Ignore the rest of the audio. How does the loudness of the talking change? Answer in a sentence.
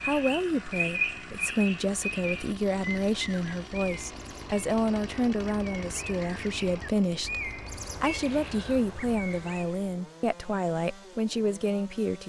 The loudness of the talking stays about the same.